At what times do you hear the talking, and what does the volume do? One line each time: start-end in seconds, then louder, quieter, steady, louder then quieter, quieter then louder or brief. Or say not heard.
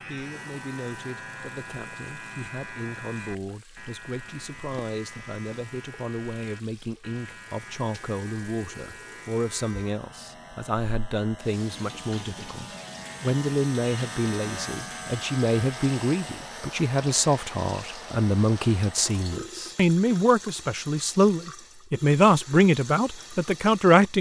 0.1-24.1 louder.